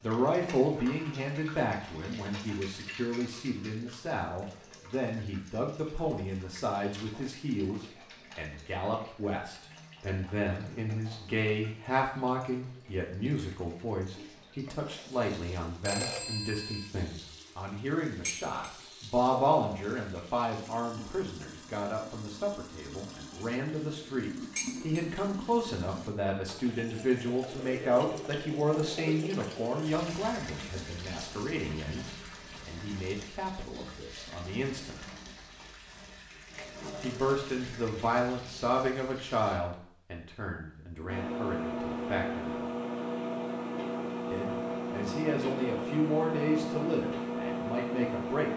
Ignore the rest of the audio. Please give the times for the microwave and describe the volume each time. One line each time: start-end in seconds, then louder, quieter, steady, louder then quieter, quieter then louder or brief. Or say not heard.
41.0-48.5 steady.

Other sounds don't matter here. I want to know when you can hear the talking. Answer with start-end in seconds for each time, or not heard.
0.0-35.0, 37.0-42.5, 44.3-48.5.